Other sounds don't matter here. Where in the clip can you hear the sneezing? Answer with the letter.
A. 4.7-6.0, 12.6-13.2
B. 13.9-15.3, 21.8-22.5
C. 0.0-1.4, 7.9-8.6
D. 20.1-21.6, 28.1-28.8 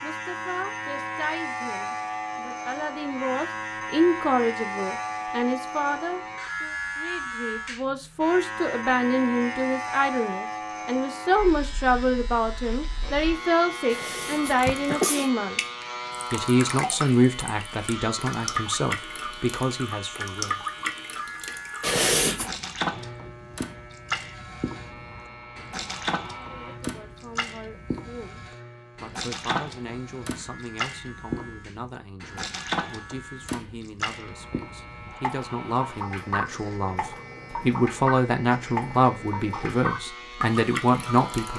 B.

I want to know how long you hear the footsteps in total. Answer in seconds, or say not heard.
not heard.